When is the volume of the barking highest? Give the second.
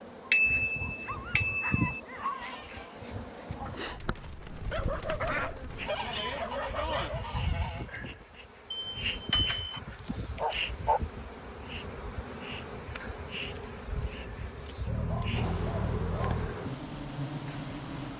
11 s.